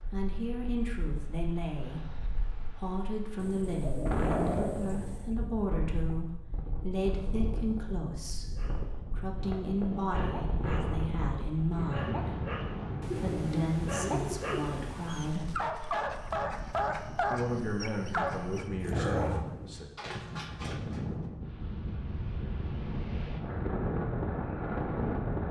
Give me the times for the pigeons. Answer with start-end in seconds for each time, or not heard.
3.4-5.3, 13.0-15.4.